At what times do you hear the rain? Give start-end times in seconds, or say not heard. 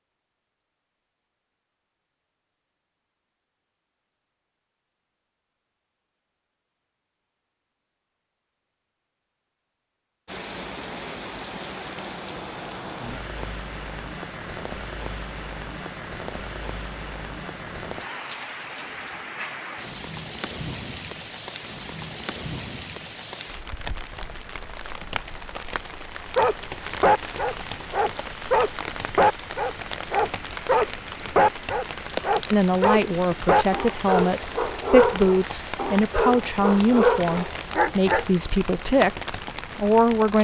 10.2-40.3.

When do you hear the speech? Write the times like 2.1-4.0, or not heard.
32.5-40.3.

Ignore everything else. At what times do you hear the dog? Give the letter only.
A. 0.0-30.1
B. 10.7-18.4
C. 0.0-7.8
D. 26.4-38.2
D.